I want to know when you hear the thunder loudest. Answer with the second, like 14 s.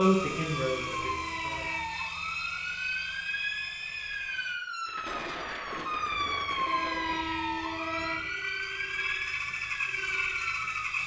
5 s.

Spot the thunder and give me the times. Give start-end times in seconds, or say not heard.
4.8-7.5.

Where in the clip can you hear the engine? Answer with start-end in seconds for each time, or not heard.
0.0-4.5, 6.5-11.0.